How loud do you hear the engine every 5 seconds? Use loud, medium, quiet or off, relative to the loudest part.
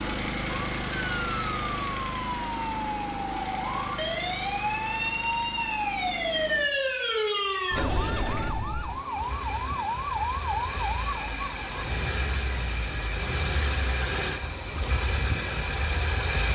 loud, medium, loud, loud.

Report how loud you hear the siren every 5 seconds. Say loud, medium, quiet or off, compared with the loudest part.
loud, loud, medium, quiet.